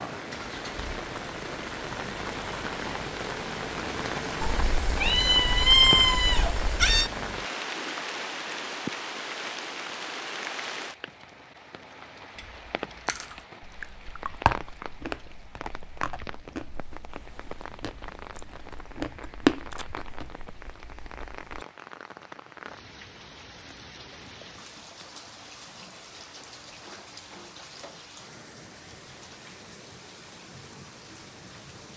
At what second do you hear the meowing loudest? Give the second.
6 s.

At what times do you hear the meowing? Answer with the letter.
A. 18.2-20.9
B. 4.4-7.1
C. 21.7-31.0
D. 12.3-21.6
B.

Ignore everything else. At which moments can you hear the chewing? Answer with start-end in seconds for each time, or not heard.
12.3-21.6.